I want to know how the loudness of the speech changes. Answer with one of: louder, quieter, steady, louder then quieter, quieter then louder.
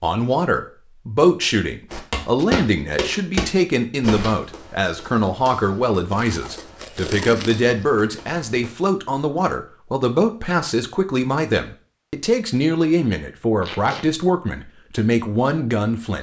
steady.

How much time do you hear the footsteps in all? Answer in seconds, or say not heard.
7 s.